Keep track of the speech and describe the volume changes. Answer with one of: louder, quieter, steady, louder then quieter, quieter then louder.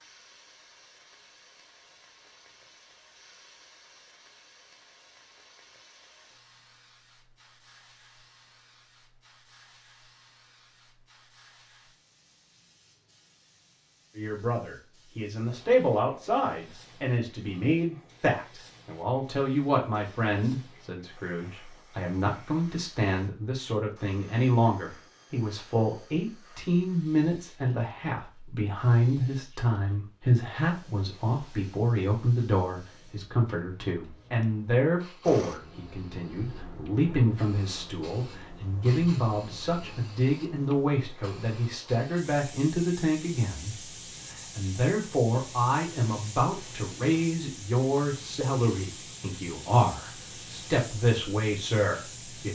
steady.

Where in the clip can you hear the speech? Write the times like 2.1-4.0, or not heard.
14.2-52.5.